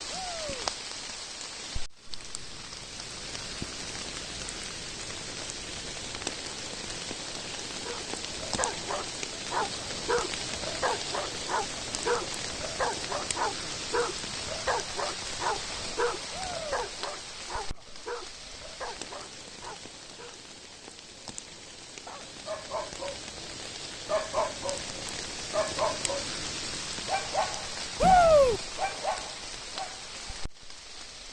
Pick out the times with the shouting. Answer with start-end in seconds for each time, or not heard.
0.1-0.7, 16.3-16.8, 28.0-28.6.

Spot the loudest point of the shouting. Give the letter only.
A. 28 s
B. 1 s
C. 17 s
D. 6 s
A.